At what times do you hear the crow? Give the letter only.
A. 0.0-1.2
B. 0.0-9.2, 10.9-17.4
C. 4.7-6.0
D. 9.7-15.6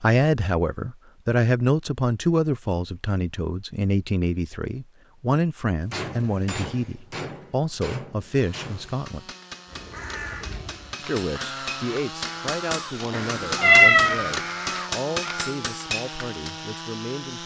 D.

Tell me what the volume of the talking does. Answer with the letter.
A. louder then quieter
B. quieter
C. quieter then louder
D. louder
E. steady
B.